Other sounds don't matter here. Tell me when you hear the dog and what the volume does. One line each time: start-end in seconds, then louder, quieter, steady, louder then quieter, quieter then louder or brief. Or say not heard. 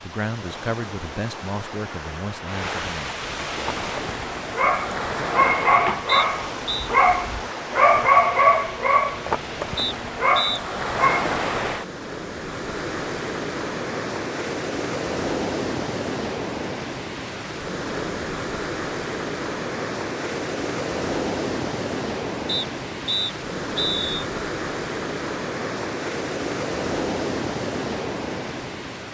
3.5-11.3 louder then quieter.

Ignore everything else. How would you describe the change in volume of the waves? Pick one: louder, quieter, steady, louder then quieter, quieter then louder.
steady.